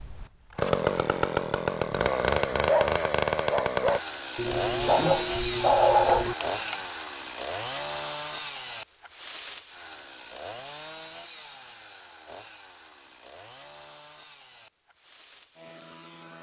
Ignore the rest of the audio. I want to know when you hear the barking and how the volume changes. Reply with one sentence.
You can hear the barking from 2.6 to 6.8 s, getting louder.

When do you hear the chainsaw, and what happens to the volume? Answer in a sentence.
You can hear the chainsaw from 0.0 to 16.3 s, getting quieter.